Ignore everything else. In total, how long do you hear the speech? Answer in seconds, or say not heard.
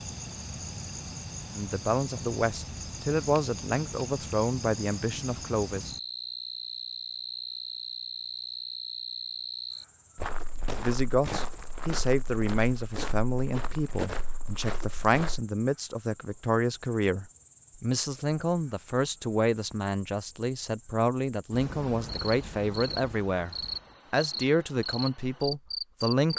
20 s.